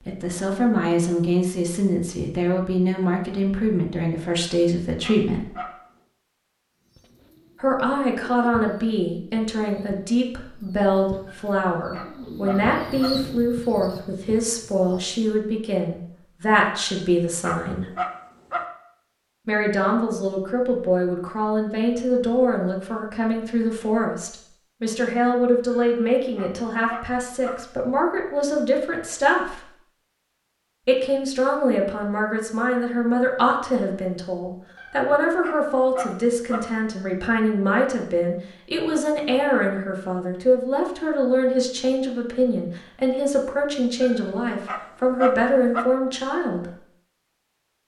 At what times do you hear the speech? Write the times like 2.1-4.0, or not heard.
0.1-5.5, 7.6-17.9, 19.4-29.6, 30.9-46.6.